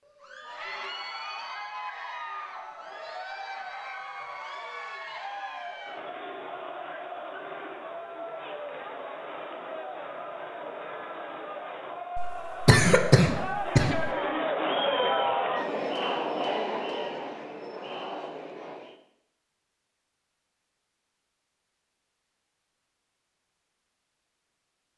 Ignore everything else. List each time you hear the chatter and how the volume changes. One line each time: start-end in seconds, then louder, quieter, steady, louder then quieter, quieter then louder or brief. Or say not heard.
0.1-18.9 louder.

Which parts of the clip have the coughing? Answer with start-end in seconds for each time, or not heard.
12.2-14.1.